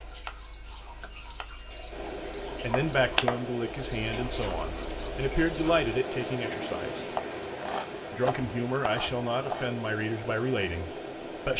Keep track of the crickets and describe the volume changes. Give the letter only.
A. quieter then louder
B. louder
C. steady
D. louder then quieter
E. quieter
D.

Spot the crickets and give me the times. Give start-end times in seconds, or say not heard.
0.0-11.5.